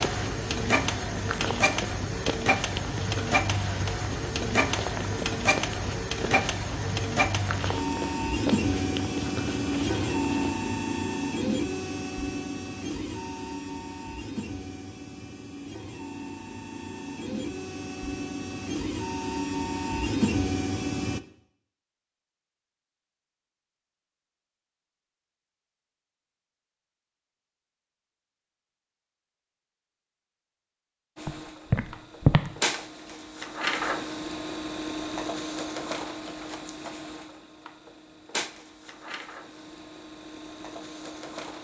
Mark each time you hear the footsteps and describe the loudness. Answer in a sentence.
The footsteps can be heard from 0.0 to 10.6 s, at a steady volume; and briefly from 31.2 to 32.5 s.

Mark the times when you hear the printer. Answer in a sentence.
You can hear the printer from 0.0 to 21.2 s and from 31.1 to 41.5 s.